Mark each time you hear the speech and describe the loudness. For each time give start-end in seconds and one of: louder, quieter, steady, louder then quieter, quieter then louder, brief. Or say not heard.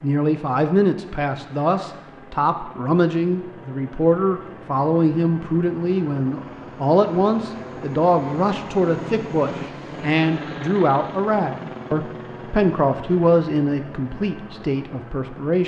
0.0-15.6 steady.